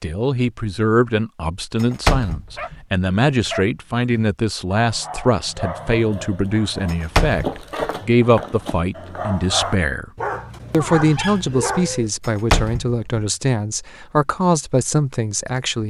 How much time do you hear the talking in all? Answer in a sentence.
You can hear the talking for 15 seconds altogether.